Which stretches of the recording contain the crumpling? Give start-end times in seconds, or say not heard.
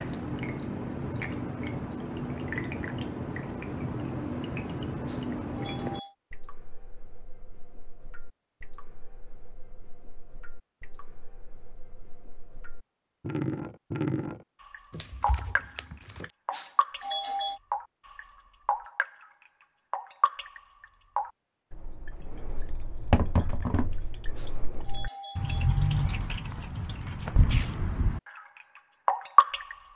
14.9-16.3.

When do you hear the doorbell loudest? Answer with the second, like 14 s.
17 s.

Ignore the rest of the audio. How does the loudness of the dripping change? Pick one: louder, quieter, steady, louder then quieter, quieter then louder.
quieter then louder.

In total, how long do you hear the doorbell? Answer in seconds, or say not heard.
4 s.